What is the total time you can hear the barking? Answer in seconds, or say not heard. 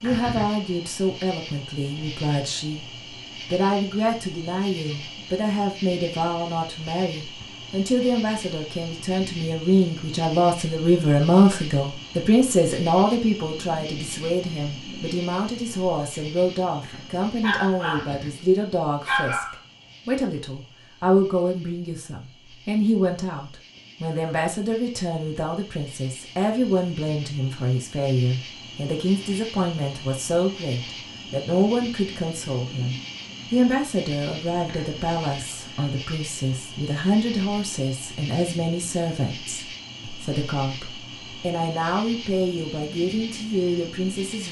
2 s.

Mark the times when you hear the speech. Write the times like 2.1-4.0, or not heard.
0.0-2.9, 3.5-44.4.